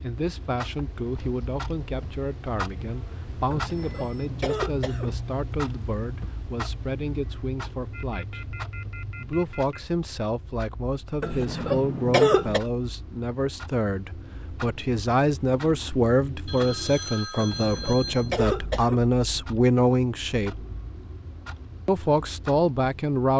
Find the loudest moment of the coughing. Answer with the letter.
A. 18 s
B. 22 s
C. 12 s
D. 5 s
C.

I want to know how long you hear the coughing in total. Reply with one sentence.
The coughing can be heard for 5 seconds in total.